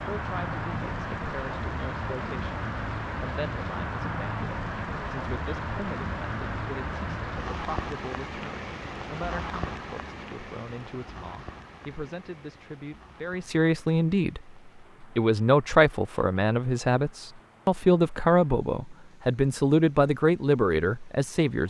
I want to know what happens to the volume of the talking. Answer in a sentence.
The volume of the talking goes up.